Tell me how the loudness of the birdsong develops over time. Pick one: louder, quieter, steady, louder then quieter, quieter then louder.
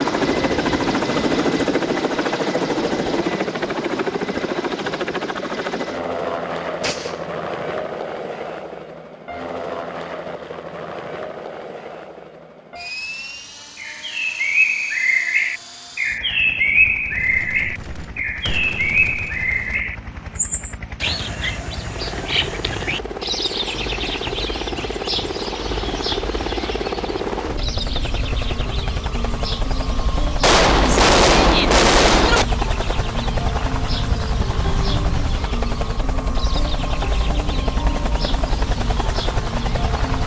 quieter.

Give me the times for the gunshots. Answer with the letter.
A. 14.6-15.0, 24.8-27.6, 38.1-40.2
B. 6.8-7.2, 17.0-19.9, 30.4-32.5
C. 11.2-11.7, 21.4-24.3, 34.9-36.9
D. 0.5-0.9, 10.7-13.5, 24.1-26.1
B.